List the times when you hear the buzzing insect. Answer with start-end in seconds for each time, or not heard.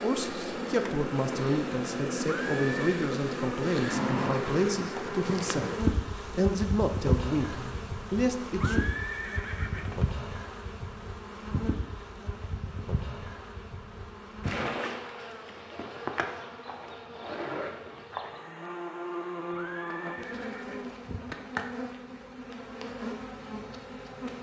0.0-24.3.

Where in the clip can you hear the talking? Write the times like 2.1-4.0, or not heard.
0.0-8.8.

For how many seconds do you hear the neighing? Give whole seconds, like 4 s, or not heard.
4 s.